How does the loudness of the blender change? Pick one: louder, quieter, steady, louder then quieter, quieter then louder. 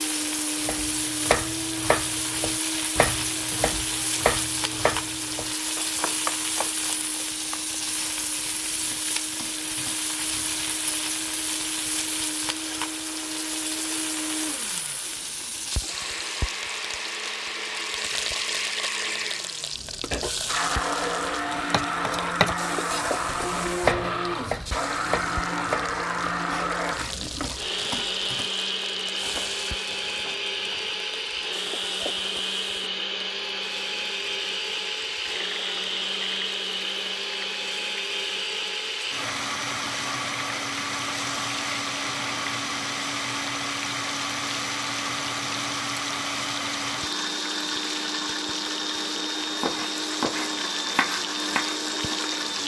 louder.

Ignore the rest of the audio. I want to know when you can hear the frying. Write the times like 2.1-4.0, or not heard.
0.0-52.6.